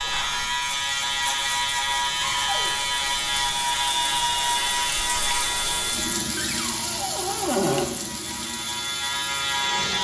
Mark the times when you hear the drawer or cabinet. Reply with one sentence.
The drawer or cabinet can be heard from 2.2 to 2.7 s and from 6.3 to 7.9 s.